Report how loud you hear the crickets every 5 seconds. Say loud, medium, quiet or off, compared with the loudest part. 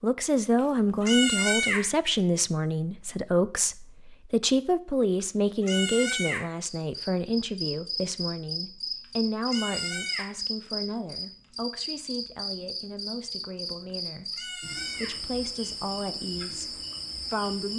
off, loud, loud, loud.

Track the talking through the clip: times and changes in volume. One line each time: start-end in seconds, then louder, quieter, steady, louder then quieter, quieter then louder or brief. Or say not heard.
0.0-17.7 quieter.